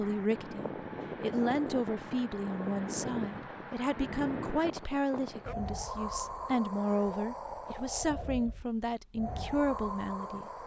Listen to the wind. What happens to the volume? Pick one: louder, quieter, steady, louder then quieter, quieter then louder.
steady.